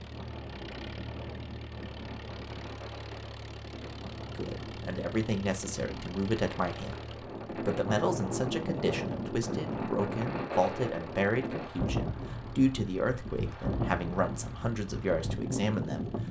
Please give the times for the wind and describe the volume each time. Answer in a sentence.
You can hear the wind from 0.0 to 16.2 s, getting louder.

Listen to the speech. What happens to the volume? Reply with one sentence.
The volume of the speech stays about the same.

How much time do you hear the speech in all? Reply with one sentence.
The speech can be heard for 12 seconds in total.